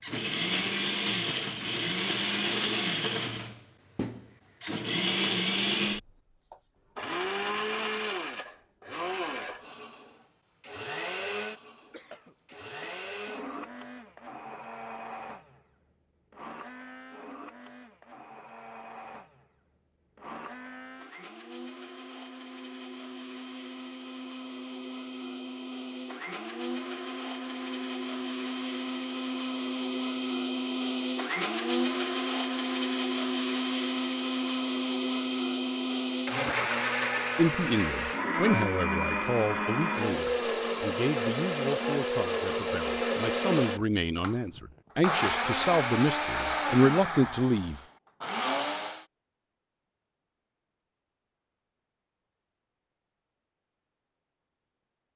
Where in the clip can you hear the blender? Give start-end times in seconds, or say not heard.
0.0-49.0.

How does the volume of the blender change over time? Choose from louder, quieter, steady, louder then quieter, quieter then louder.
quieter then louder.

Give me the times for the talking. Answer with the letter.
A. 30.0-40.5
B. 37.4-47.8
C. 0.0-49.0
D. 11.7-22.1
B.